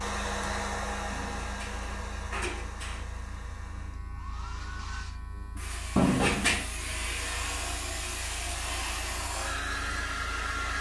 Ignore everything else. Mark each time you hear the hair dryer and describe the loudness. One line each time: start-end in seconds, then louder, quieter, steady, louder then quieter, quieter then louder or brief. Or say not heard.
0.0-10.7 quieter then louder.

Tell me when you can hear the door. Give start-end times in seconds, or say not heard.
1.1-3.0, 6.0-6.7.